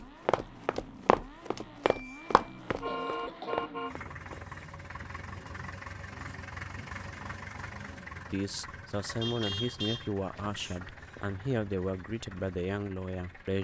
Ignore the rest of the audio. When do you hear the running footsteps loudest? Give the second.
1 s.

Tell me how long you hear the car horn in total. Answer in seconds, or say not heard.
3 s.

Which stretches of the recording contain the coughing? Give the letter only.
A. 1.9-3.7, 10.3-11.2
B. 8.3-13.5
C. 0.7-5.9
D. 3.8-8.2
A.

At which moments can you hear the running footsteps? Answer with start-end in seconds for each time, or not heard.
0.0-4.5.